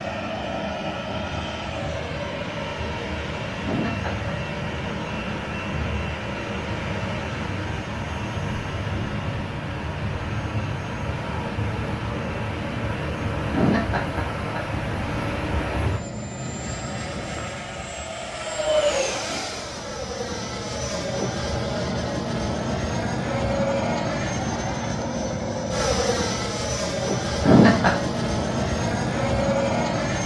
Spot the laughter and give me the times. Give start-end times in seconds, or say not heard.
3.6-4.3, 13.5-14.6, 27.4-27.9.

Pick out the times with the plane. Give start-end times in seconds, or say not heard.
0.0-30.2.